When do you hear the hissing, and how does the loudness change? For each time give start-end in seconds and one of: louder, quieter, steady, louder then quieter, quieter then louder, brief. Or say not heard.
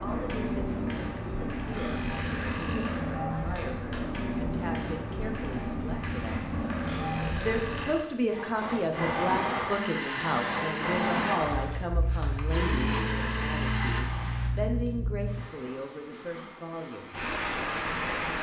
0.0-18.3 steady.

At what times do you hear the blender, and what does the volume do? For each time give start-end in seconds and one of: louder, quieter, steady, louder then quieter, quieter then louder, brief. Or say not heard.
9.7-14.1 quieter then louder.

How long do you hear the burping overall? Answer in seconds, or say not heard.
4 s.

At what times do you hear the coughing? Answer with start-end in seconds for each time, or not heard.
not heard.